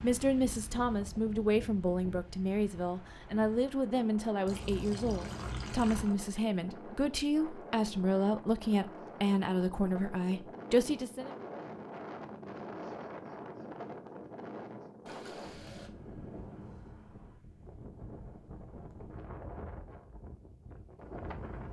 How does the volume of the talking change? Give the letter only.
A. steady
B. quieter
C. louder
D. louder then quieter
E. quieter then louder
A.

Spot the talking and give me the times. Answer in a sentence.
The talking can be heard from 0.0 to 11.3 s.